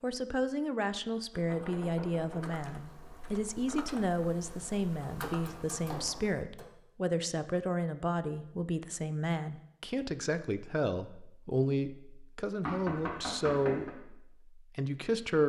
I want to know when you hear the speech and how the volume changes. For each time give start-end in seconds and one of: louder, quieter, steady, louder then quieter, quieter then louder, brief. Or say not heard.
0.0-15.4 steady.